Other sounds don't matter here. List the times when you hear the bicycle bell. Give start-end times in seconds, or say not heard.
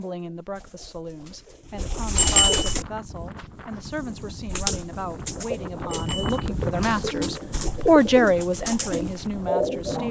2.1-2.8, 5.9-6.4.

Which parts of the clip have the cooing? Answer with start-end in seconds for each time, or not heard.
0.0-2.9, 4.5-10.0.